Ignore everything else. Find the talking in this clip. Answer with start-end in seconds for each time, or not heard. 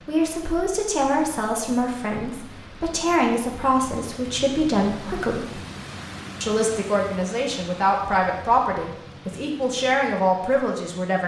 0.1-5.5, 6.4-11.2.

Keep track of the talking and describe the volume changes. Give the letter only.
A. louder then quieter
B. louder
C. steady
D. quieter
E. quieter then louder
C.